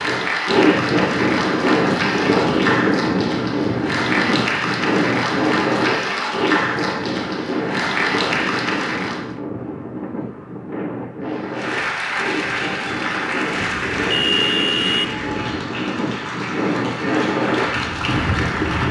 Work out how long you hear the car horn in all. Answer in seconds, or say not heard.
2 s.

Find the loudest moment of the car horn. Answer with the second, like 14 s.
14 s.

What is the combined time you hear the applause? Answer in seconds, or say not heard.
17 s.